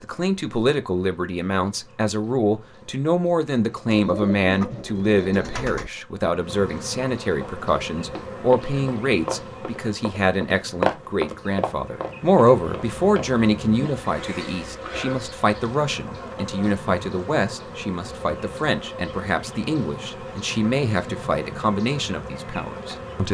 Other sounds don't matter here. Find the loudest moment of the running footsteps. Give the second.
11 s.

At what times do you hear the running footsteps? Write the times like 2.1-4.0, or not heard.
7.3-13.2.